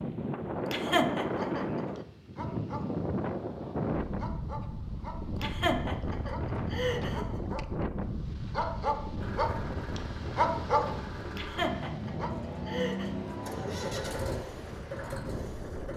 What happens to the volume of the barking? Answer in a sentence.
The loudness of the barking goes up.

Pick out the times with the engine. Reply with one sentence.
The engine can be heard from 9.2 to 15.9 s.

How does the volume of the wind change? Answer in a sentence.
The loudness of the wind goes down.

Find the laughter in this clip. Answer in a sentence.
The laughter can be heard from 0.7 to 1.6 s, from 5.4 to 7.2 s and from 11.3 to 13.1 s.